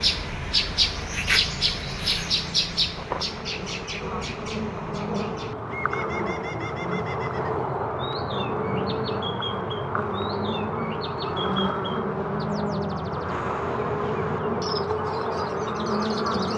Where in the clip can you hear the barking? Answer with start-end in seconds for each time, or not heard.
not heard.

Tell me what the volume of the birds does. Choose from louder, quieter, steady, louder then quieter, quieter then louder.
quieter.